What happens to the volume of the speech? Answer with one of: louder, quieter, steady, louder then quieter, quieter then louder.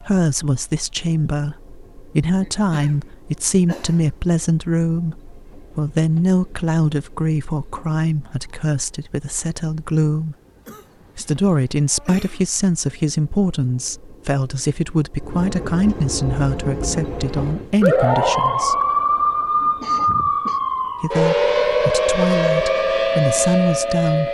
steady.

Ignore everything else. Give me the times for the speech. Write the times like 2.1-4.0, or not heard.
0.0-10.3, 11.2-18.8, 21.0-24.3.